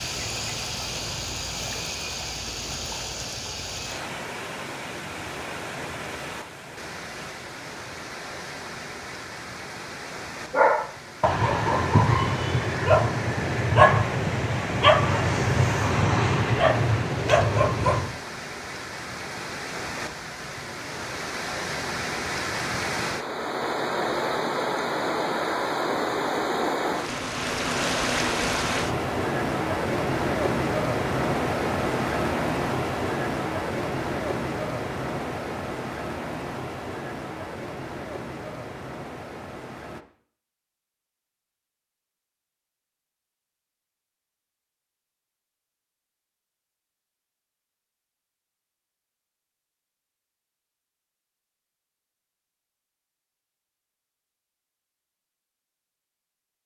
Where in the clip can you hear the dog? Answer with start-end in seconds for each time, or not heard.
10.5-18.2.